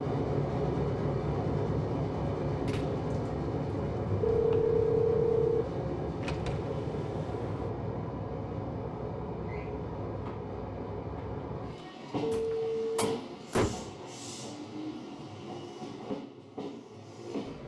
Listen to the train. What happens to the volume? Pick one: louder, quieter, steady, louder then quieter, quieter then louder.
quieter.